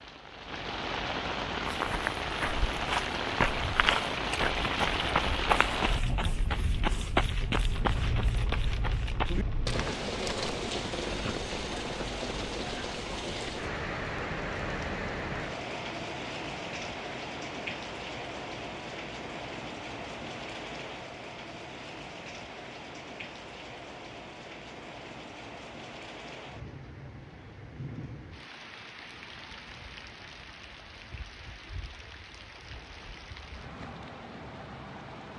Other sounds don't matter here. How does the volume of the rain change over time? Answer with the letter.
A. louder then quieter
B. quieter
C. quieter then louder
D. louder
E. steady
B.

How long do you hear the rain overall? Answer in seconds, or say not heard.
35 s.